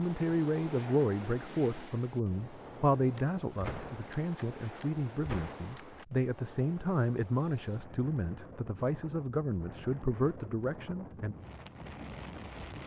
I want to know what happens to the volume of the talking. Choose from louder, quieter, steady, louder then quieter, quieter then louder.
steady.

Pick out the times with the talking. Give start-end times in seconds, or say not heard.
0.0-11.3.